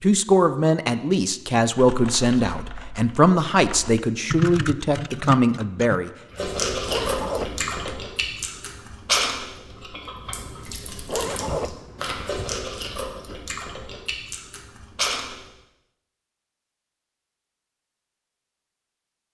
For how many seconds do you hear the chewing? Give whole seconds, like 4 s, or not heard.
9 s.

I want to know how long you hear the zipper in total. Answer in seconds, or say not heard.
3 s.